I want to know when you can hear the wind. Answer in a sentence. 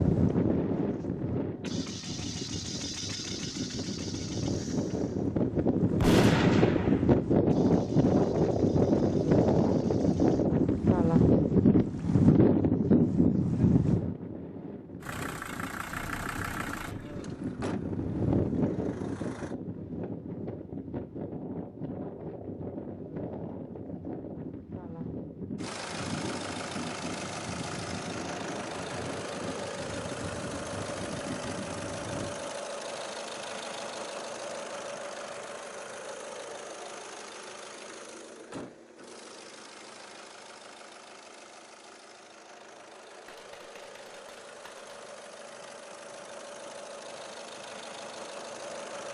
You can hear the wind from 0.0 to 32.5 s.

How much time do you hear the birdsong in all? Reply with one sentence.
The birdsong can't be heard in this clip.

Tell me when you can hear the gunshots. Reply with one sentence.
You can hear the gunshots from 6.0 to 7.2 s and from 43.2 to 45.0 s.